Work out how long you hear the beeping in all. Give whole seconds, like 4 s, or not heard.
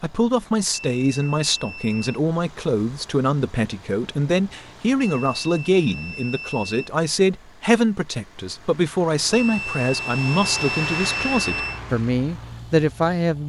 6 s.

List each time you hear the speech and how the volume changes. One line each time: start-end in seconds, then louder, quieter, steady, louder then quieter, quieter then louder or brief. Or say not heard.
0.0-13.4 steady.